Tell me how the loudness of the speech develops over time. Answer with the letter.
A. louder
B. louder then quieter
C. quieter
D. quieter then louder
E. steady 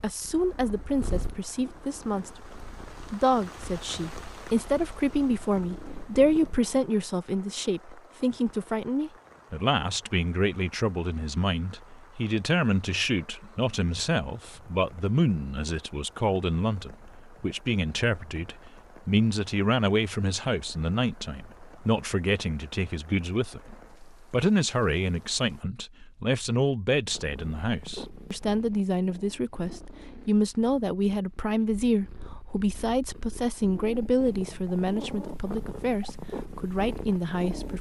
E.